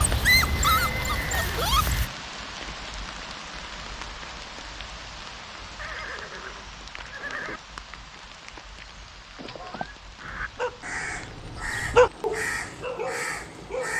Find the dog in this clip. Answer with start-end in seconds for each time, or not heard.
0.0-2.0, 10.3-13.9.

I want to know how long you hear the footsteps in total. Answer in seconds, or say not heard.
not heard.